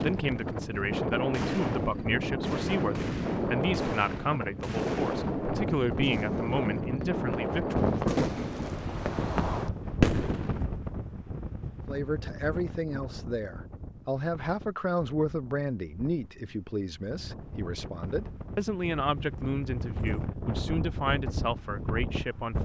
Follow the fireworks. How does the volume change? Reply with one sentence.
The loudness of the fireworks goes up.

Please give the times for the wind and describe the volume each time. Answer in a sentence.
The wind can be heard from 0.0 to 22.5 s, getting quieter then louder.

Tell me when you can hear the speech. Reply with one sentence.
The speech can be heard from 0.0 to 8.0 s and from 11.8 to 22.5 s.